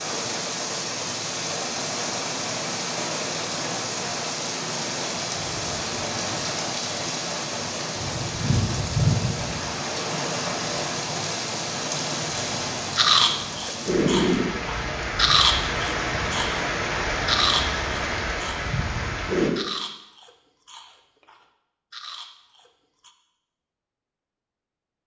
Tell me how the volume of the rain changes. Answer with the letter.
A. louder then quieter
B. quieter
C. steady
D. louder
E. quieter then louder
C.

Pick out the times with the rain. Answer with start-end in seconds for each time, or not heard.
0.0-19.5.